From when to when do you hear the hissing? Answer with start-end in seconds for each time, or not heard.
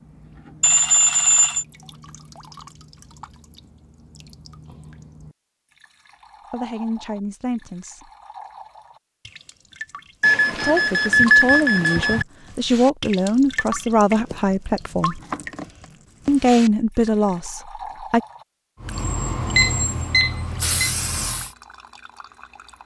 18.8-21.6.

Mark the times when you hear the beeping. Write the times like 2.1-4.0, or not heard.
0.6-1.6, 10.2-12.2, 19.6-20.9.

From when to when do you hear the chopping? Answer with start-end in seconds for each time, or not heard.
not heard.